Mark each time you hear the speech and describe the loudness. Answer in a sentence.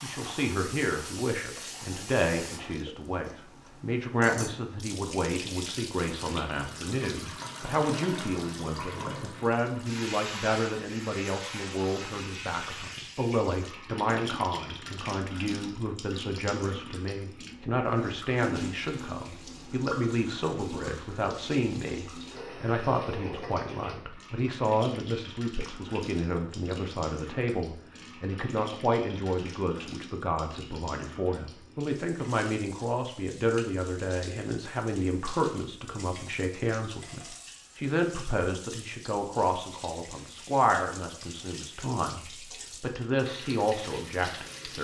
The speech can be heard from 0.0 to 44.7 s, at a steady volume.